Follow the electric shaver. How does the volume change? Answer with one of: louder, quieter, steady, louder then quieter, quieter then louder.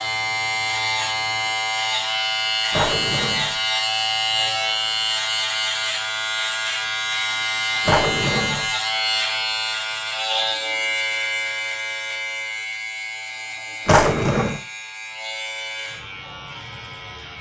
quieter.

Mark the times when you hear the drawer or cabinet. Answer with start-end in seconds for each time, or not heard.
2.7-3.5, 7.8-8.7, 13.8-14.6.